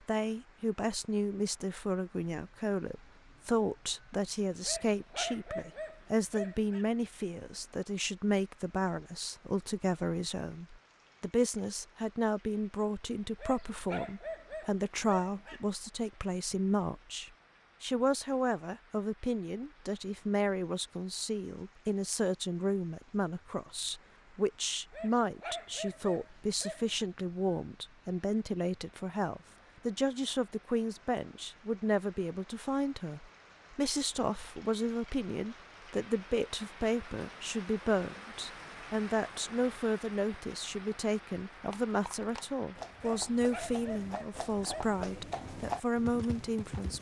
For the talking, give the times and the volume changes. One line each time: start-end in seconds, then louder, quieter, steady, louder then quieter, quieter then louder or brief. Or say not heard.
0.1-46.9 steady.